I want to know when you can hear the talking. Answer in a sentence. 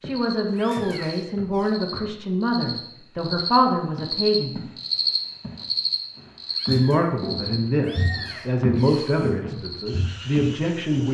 The talking can be heard from 0.0 to 4.6 s and from 6.7 to 11.0 s.